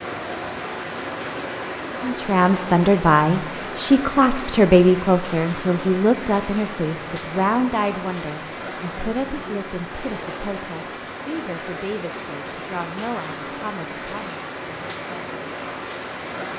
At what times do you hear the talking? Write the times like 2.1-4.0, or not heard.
2.0-14.4.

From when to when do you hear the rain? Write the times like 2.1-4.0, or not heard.
0.0-16.5.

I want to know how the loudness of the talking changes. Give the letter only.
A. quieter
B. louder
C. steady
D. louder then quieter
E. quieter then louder
A.